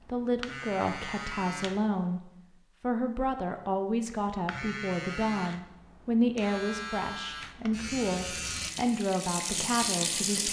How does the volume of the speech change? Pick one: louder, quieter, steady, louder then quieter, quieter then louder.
steady.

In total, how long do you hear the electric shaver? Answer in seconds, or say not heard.
7 s.